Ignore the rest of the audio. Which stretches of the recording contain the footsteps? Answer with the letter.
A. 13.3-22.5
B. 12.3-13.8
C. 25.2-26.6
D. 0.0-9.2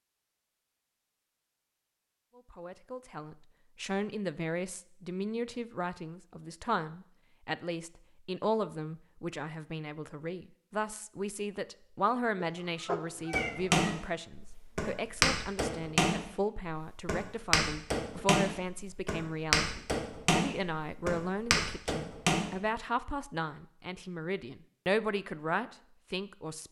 A.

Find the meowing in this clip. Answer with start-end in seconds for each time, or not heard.
12.3-13.8.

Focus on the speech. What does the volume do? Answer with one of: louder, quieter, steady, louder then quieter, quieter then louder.
steady.